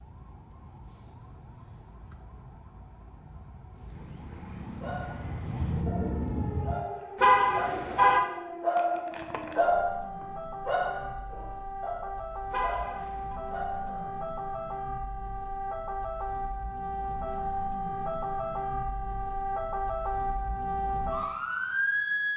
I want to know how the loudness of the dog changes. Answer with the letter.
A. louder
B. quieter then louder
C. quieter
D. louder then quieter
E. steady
D.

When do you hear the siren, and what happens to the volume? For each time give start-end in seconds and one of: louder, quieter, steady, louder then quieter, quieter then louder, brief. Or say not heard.
0.0-22.3 louder.